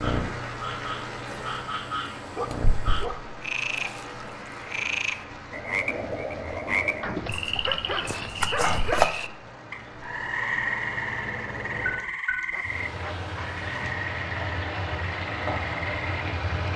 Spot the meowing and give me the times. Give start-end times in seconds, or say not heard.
not heard.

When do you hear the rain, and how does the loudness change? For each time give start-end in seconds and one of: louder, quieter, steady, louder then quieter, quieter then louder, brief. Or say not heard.
0.0-16.7 quieter then louder.